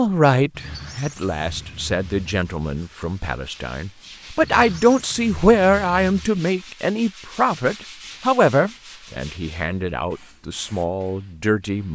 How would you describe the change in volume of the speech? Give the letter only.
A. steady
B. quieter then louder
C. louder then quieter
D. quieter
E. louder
C.